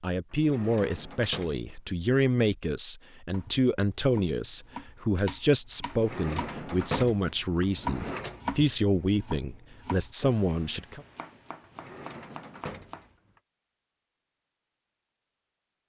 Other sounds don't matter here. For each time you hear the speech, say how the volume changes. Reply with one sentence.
You can hear the speech from 0.0 to 11.0 s, at a steady volume.